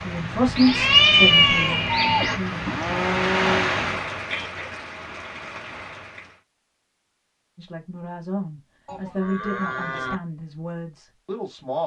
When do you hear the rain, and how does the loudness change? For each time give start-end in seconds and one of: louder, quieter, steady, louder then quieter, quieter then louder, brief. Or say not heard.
0.0-6.4 louder then quieter.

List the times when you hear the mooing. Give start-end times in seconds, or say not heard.
1.9-3.8, 8.8-10.2.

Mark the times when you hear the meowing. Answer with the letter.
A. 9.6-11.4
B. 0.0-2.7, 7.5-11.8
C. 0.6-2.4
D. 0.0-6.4
C.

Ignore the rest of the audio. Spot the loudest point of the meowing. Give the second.
1 s.